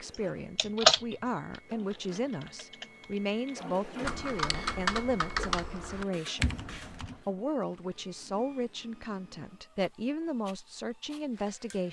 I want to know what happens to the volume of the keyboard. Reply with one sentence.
The volume of the keyboard goes down, then up.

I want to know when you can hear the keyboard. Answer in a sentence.
The keyboard can be heard from 0.1 to 7.2 s.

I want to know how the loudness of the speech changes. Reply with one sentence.
The volume of the speech stays about the same.